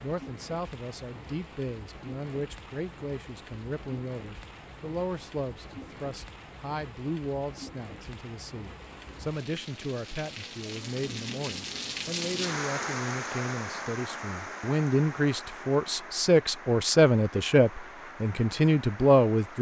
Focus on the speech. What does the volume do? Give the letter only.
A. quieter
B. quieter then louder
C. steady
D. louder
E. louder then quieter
D.